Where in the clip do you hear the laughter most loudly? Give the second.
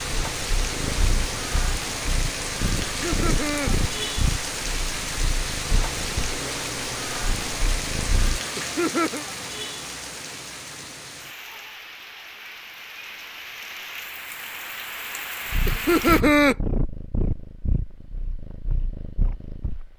16 s.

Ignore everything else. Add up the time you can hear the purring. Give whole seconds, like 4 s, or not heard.
13 s.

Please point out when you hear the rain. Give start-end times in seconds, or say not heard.
0.0-16.2.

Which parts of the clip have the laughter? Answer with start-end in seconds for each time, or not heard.
2.9-3.7, 8.6-9.2, 15.7-16.6.